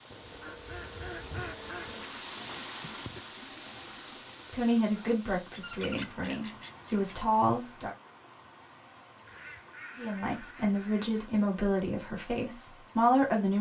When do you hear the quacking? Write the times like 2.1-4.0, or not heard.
0.1-2.1, 5.5-7.2, 9.2-11.3.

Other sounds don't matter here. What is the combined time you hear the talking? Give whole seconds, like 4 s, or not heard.
7 s.